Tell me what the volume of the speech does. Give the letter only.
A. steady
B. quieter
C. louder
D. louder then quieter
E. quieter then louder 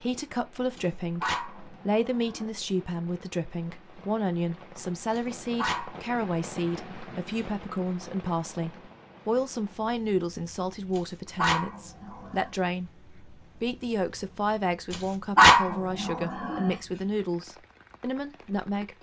A.